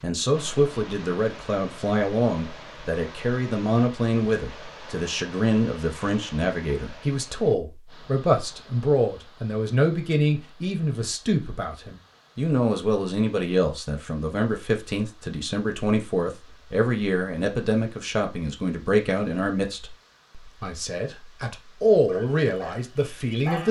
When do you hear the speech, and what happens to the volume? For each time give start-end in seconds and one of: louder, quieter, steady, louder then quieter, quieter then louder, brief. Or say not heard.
0.0-23.6 steady.